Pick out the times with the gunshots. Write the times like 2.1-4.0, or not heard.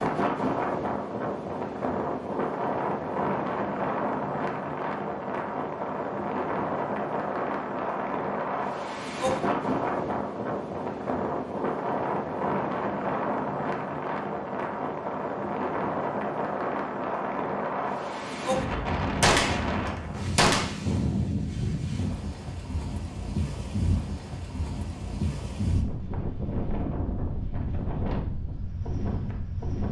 19.2-20.7.